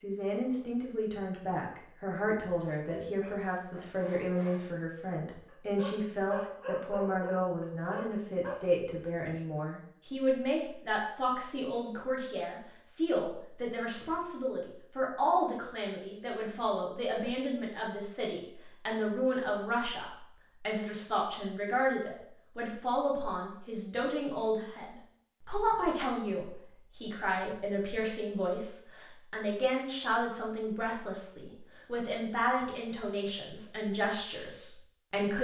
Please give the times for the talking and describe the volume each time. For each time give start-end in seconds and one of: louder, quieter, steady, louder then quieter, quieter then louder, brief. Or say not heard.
0.0-35.3 steady.